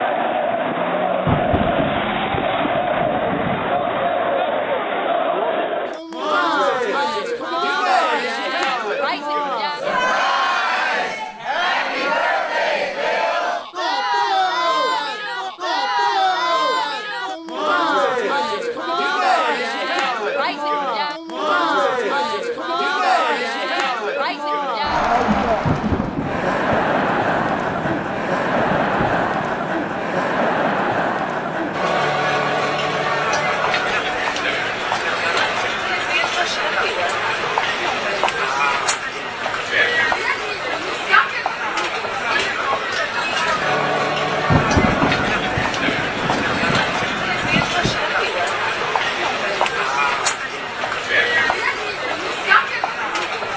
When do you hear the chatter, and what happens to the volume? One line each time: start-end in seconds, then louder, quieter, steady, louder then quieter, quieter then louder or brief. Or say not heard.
0.0-53.5 steady.